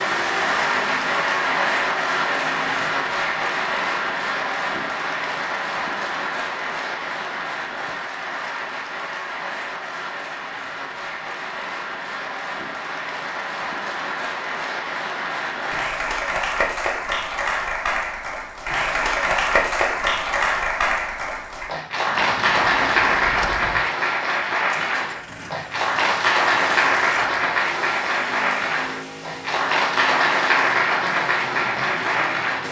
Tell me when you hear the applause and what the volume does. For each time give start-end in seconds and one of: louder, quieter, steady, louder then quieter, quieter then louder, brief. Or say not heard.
0.0-32.6 quieter then louder.